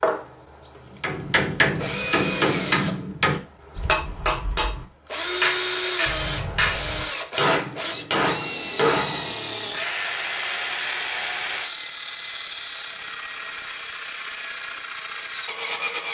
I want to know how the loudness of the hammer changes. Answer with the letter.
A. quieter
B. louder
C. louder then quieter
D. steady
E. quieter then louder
D.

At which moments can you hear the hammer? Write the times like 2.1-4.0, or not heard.
1.0-9.2.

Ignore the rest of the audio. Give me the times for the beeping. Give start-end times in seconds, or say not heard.
6.0-7.1.